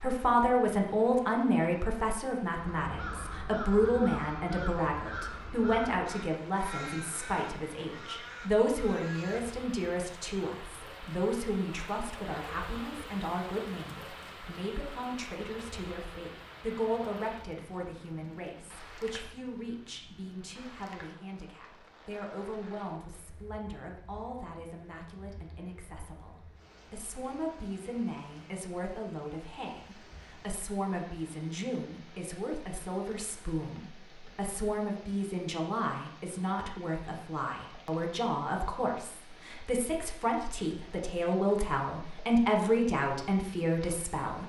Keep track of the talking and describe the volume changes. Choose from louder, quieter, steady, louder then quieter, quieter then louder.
quieter then louder.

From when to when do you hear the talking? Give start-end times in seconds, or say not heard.
0.0-44.4.